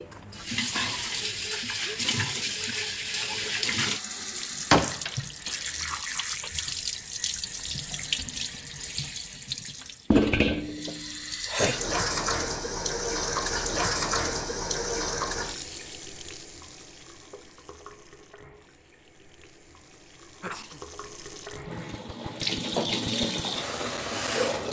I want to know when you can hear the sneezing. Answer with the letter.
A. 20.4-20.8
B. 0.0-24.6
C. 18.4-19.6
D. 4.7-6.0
A.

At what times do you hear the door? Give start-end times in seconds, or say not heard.
4.7-6.0.